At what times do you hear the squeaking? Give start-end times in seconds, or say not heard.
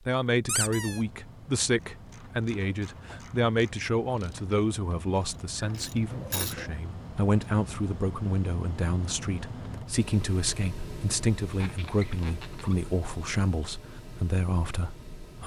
0.5-1.0, 5.5-6.8, 11.5-12.9.